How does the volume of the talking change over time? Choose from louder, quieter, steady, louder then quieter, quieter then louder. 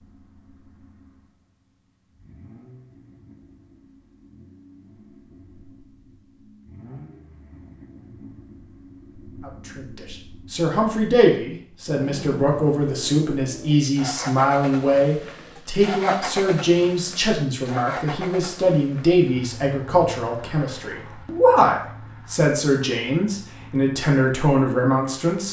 steady.